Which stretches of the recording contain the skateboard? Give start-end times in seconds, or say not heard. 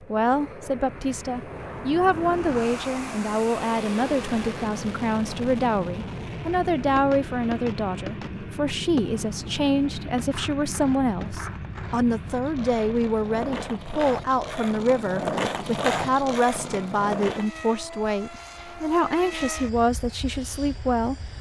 6.8-17.5.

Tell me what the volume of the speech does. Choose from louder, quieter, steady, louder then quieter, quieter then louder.
steady.